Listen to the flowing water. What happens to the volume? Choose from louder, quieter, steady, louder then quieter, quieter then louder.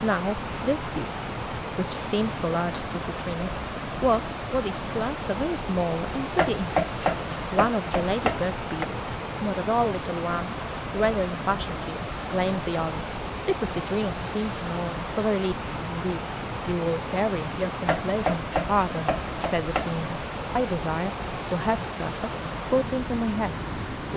steady.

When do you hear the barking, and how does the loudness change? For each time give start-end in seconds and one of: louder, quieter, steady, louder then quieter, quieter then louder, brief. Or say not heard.
not heard.